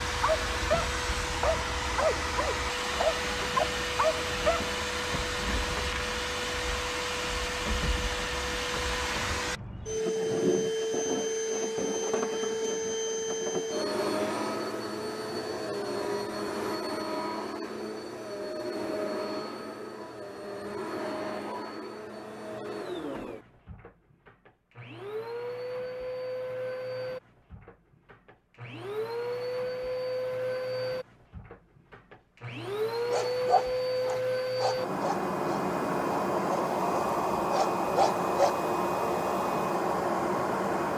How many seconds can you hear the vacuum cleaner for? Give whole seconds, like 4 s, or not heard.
41 s.